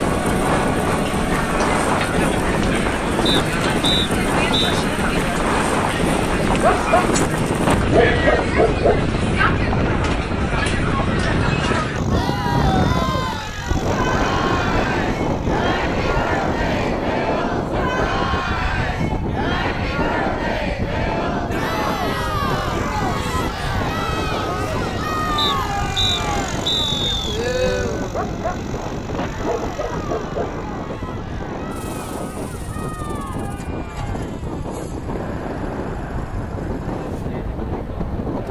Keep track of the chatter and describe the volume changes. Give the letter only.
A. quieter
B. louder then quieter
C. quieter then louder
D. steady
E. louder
A.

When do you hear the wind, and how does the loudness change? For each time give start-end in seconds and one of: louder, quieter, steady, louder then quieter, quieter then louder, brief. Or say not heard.
0.0-38.4 quieter.